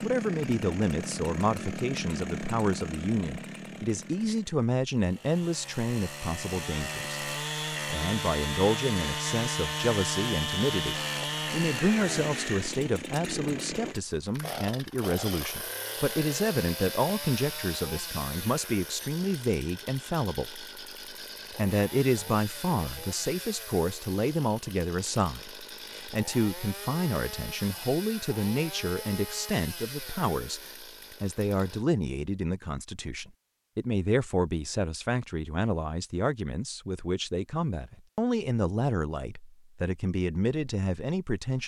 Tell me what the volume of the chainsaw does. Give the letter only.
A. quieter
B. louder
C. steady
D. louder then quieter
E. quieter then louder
D.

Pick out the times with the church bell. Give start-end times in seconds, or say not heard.
not heard.